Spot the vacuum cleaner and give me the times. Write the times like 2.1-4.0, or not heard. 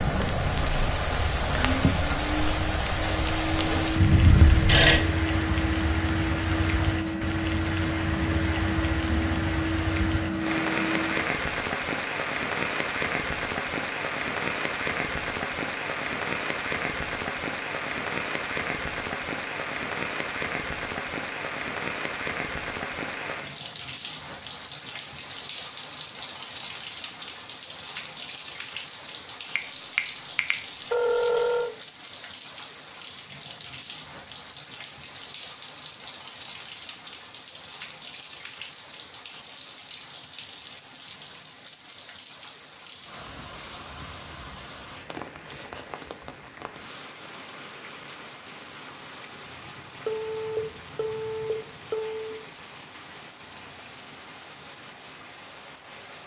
0.0-11.3.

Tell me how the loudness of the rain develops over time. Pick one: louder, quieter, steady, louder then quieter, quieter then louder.
quieter.